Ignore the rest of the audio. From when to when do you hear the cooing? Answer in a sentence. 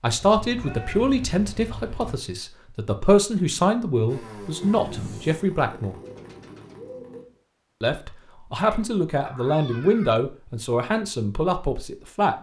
You can hear the cooing from 5.8 to 7.3 s.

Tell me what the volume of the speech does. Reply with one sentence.
The loudness of the speech stays about the same.